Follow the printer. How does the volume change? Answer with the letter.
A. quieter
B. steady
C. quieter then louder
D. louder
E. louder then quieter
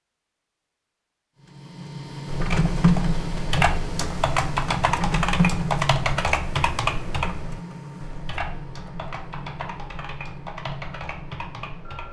A.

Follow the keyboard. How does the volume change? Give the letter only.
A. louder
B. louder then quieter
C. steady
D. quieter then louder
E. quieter
E.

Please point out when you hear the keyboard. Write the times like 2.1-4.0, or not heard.
2.2-12.0.